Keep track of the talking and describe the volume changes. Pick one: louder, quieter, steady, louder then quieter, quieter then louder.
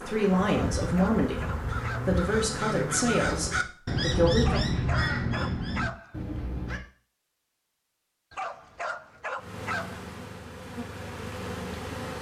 quieter.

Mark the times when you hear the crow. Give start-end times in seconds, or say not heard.
0.5-6.8.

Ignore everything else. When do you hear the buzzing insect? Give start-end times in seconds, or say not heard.
0.0-3.6, 9.3-12.1.